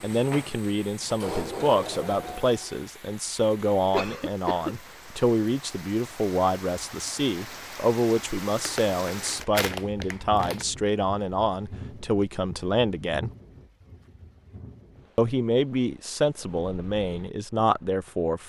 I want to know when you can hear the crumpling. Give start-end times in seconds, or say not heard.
8.7-10.7.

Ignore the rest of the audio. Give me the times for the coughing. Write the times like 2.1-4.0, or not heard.
3.9-4.8.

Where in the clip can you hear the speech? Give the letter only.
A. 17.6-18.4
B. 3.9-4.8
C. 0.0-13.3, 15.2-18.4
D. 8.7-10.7
C.